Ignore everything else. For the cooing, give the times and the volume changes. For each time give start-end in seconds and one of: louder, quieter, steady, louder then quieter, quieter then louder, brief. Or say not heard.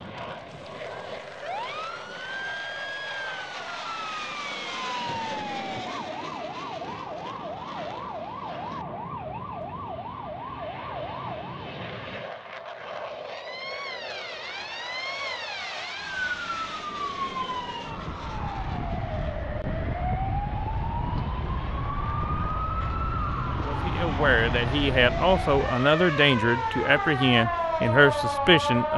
not heard.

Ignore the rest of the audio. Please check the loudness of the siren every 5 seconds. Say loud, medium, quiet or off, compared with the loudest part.
medium, medium, medium, medium, loud, loud.